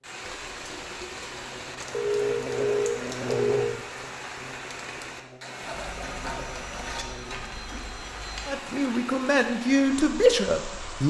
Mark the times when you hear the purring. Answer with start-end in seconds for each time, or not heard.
not heard.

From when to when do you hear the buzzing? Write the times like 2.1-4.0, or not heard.
0.0-7.7.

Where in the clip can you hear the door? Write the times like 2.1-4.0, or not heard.
not heard.